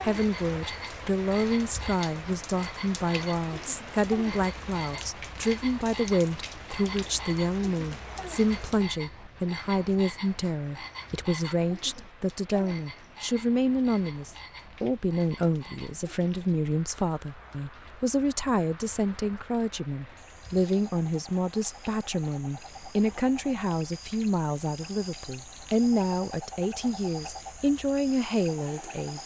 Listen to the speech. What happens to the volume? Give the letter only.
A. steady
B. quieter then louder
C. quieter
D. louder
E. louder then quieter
A.